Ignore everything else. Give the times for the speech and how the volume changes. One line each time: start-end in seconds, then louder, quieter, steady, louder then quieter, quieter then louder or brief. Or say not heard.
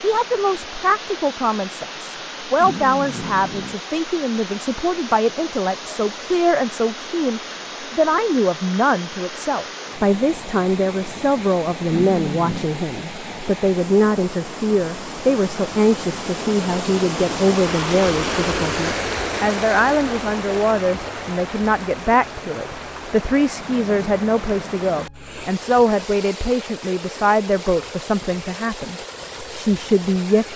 0.0-30.5 steady.